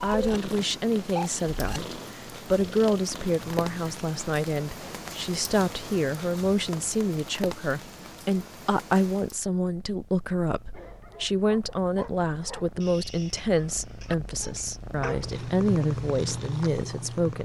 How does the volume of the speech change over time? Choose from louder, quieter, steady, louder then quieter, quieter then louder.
steady.